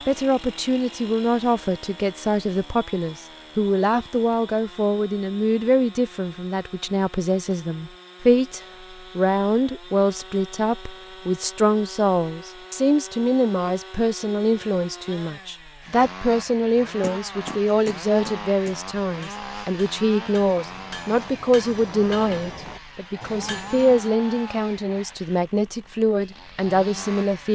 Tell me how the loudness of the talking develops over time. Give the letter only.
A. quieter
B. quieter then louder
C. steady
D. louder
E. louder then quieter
C.